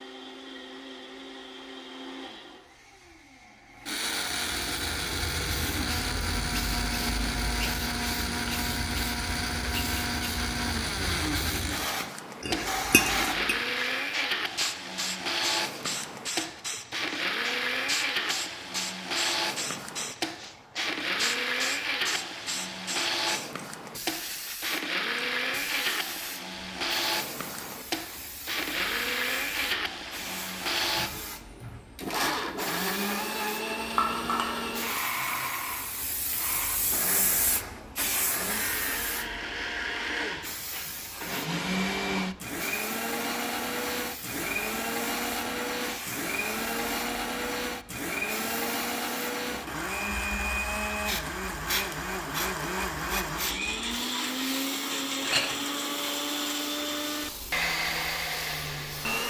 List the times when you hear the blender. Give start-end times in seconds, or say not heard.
0.0-59.2.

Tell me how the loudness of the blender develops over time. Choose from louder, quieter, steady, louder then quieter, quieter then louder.
steady.